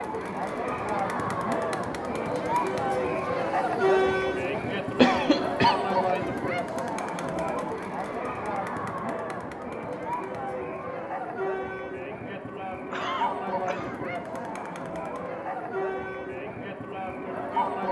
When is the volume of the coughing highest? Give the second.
5 s.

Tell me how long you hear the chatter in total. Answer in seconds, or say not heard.
18 s.